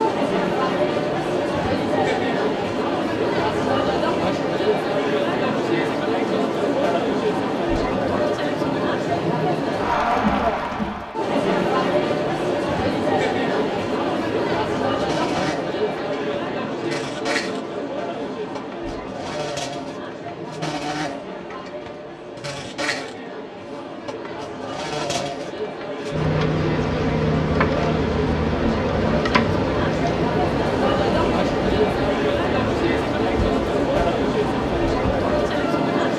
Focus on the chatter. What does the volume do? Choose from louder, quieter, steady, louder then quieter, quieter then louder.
quieter then louder.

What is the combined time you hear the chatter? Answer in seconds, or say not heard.
36 s.